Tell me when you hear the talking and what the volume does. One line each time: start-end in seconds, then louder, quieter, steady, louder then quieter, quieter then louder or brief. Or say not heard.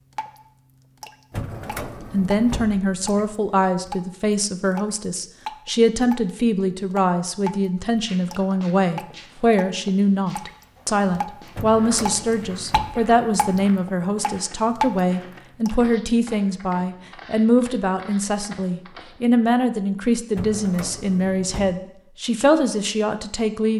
2.1-23.7 steady.